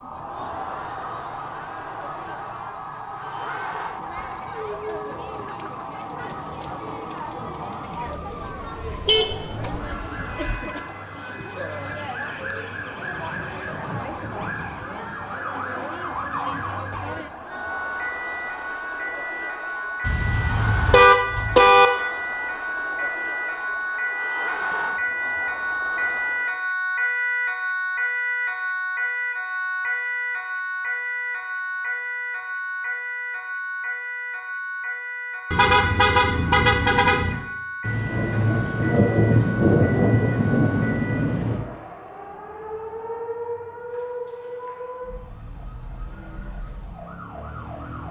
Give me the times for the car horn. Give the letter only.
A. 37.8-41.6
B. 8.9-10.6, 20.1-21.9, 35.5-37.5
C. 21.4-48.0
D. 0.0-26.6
B.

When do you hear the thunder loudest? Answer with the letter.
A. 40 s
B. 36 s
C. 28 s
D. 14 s
A.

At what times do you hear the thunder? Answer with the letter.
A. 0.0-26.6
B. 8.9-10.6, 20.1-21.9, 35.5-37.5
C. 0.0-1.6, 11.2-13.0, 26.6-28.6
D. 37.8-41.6
D.